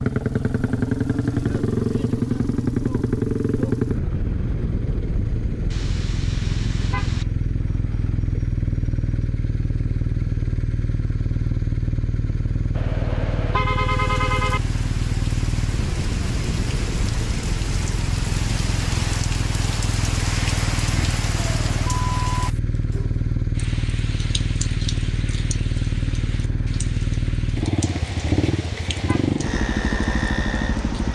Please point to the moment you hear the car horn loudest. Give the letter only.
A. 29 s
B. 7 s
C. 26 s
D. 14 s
D.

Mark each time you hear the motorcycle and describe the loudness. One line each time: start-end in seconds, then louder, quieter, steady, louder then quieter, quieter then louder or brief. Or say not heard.
0.0-31.1 steady.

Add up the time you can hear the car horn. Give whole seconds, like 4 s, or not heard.
5 s.